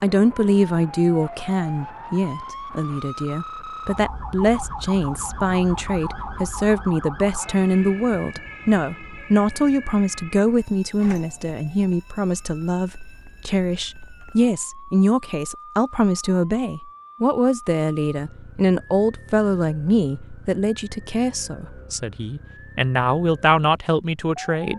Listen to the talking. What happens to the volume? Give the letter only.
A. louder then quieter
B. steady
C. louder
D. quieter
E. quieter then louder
B.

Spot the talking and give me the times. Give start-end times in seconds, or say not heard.
0.0-24.7.